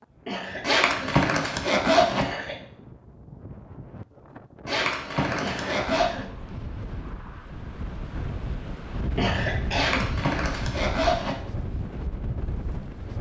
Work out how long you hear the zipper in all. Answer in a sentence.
You can hear the zipper for 5 seconds altogether.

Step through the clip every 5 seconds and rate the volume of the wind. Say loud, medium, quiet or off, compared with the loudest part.
medium, loud, loud.